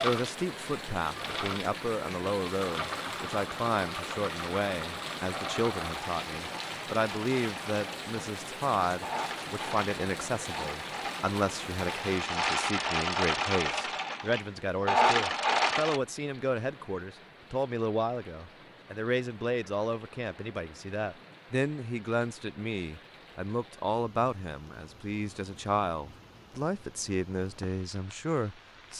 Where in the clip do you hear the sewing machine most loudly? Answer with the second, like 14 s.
15 s.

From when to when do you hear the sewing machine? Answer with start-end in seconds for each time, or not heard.
0.0-16.0.